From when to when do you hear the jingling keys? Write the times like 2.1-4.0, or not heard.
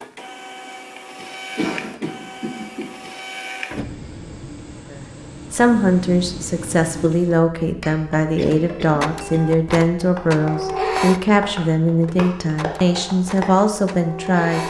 not heard.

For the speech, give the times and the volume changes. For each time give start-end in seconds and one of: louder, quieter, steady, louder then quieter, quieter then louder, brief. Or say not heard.
4.9-14.6 steady.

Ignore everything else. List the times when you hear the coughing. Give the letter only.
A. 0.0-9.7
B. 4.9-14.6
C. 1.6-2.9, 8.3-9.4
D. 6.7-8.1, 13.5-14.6
C.